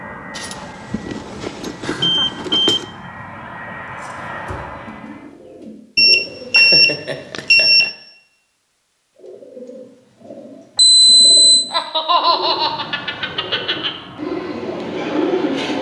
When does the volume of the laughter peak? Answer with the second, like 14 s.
12 s.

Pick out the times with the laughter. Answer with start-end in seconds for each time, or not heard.
1.8-2.8, 6.1-7.9, 11.7-13.9.